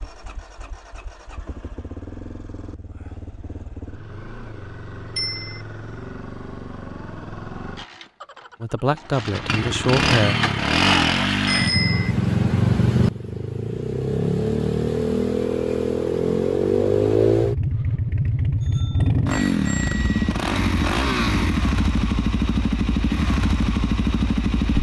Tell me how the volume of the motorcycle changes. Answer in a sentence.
The loudness of the motorcycle goes up.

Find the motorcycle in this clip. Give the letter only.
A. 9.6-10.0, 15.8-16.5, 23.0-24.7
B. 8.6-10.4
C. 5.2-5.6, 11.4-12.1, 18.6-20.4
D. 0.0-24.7
D.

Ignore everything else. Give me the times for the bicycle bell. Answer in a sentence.
You can hear the bicycle bell from 5.2 to 5.6 s, from 11.4 to 12.1 s and from 18.6 to 20.4 s.